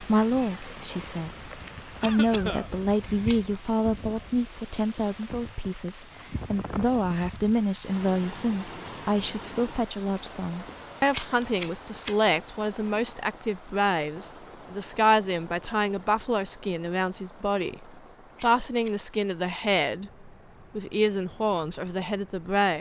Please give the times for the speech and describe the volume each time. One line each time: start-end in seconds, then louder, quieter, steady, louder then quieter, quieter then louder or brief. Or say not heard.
0.0-22.7 steady.